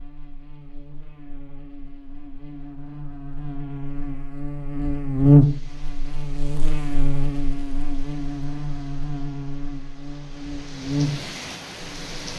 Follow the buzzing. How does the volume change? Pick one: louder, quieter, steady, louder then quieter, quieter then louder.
louder then quieter.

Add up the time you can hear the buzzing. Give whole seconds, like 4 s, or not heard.
12 s.